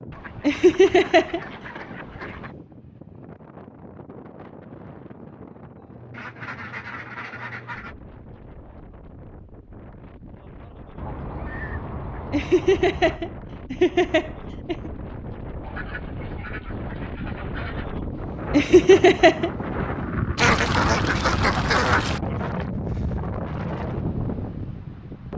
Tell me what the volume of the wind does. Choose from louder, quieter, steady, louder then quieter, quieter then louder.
louder.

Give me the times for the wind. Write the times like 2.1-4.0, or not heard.
0.0-25.3.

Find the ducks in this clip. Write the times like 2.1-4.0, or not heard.
0.1-2.5, 6.1-8.0, 10.9-13.2, 15.6-17.9, 20.4-22.2.